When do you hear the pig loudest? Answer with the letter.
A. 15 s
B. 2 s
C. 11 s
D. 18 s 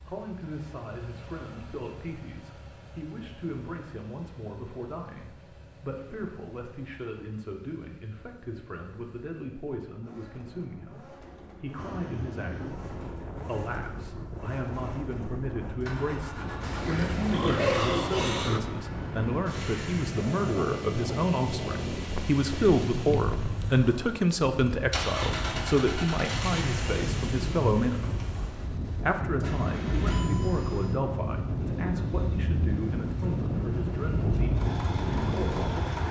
D.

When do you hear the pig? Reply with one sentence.
The pig can be heard from 16.6 to 18.6 s.